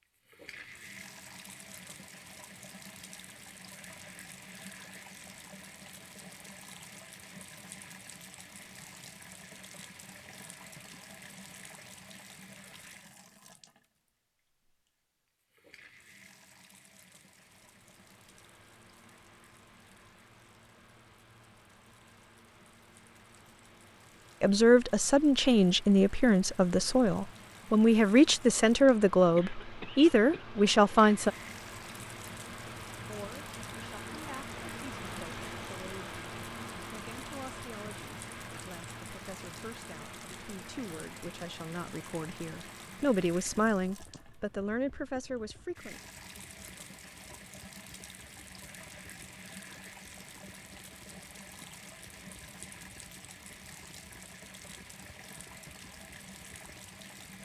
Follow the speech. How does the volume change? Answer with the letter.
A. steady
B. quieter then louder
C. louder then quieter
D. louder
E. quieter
B.